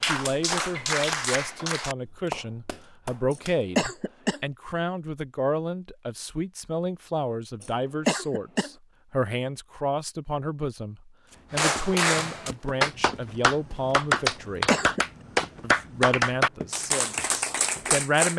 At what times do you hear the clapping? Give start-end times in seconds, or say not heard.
0.0-3.7, 11.5-18.3.